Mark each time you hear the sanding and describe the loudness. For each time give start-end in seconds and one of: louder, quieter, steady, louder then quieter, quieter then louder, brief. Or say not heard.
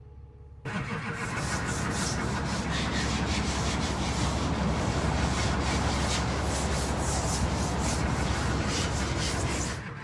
1.1-9.8 steady.